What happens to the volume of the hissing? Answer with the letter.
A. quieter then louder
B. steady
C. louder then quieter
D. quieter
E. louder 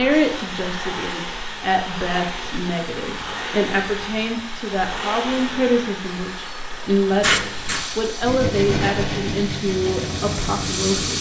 A.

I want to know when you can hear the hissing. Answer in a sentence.
You can hear the hissing from 7.1 to 11.1 s.